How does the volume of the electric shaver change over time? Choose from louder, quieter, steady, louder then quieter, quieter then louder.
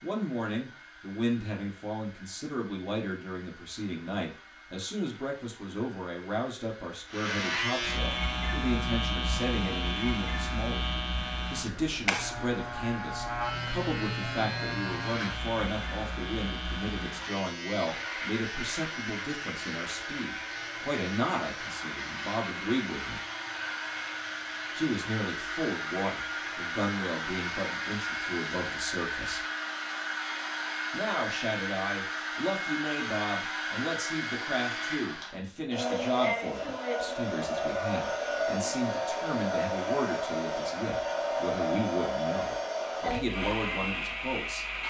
quieter.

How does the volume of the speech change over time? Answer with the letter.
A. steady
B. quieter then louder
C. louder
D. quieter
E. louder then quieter
A.